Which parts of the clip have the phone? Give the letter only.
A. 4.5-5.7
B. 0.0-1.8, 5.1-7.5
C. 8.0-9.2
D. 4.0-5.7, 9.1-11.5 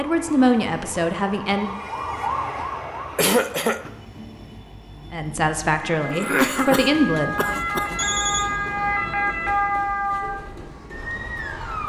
C.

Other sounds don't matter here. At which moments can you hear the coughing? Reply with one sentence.
The coughing can be heard from 3.1 to 3.8 s and from 6.0 to 8.0 s.